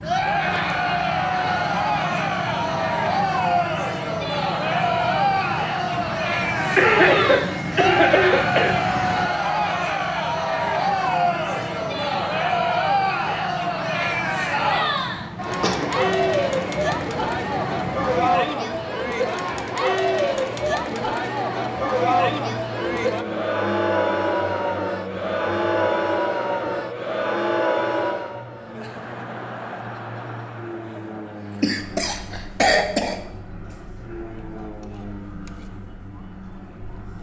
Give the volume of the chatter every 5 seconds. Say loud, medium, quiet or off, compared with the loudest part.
loud, loud, loud, loud, loud, loud, quiet, quiet.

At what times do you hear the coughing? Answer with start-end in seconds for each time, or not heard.
6.8-8.8, 15.6-16.1, 31.6-33.1.